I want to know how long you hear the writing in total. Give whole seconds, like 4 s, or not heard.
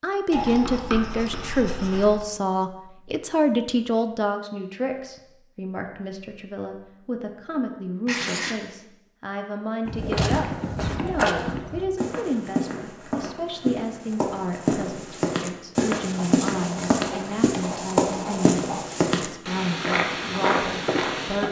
5 s.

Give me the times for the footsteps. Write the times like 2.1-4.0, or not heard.
9.8-21.4.